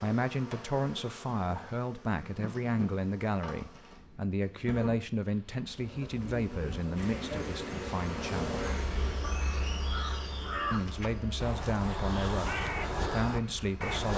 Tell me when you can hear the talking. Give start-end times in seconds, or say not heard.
0.0-8.7, 10.7-14.1.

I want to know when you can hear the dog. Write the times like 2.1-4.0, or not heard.
not heard.